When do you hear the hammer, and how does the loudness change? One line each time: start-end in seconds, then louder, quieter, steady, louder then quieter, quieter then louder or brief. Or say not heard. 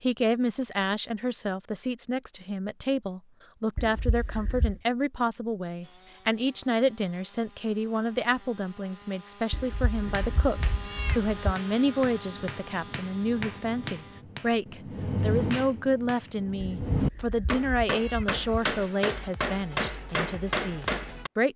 10.0-21.3 louder.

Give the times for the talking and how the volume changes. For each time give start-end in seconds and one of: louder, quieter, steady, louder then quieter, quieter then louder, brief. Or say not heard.
0.0-21.5 steady.